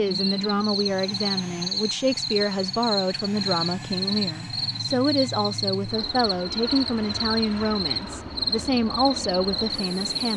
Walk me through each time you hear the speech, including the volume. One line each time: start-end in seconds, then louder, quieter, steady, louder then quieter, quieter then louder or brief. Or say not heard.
0.0-10.3 steady.